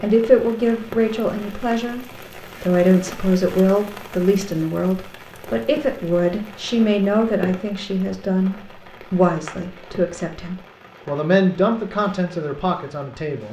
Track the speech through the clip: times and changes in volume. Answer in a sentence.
You can hear the speech from 0.0 to 13.4 s, at a steady volume.